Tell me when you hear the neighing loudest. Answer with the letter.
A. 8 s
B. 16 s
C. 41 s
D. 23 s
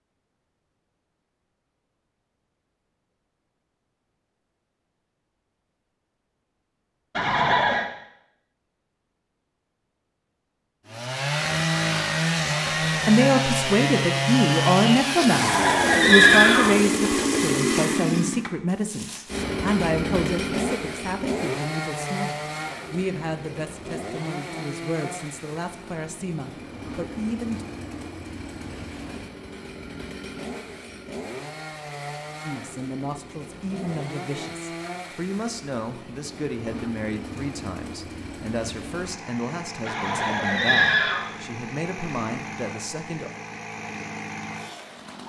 B.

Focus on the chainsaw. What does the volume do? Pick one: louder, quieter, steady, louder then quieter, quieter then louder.
quieter.